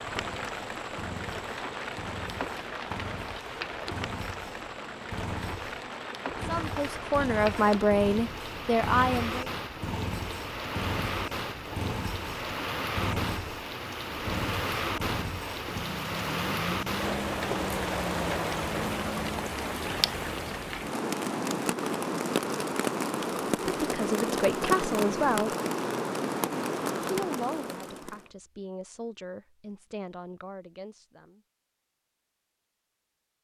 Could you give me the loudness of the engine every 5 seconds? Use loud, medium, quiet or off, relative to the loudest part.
medium, loud, loud, loud, off, off, off.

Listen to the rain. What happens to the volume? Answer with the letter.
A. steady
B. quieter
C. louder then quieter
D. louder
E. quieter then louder
D.